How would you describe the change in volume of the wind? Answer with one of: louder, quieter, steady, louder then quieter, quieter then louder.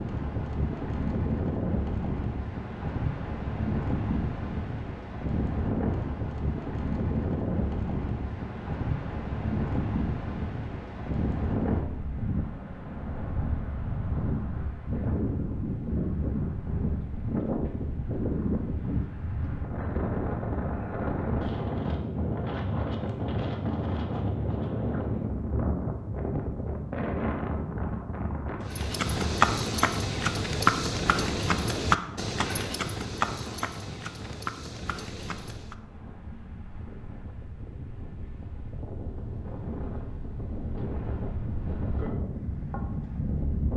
quieter.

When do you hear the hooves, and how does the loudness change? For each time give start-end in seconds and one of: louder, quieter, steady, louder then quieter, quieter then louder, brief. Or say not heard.
28.7-35.8 quieter.